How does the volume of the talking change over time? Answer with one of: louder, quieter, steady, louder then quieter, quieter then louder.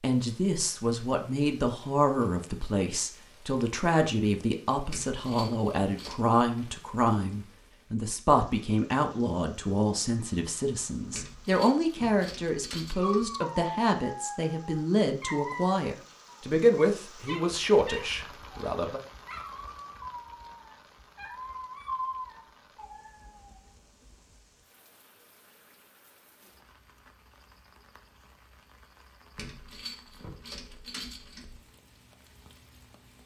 steady.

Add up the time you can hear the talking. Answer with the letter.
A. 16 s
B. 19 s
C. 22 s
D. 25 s
B.